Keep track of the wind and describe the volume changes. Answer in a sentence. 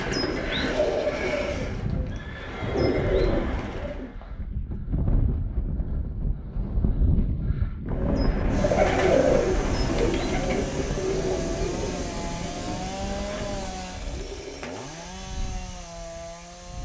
The loudness of the wind goes up, then down.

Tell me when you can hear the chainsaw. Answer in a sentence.
The chainsaw can be heard from 8.4 to 16.8 s.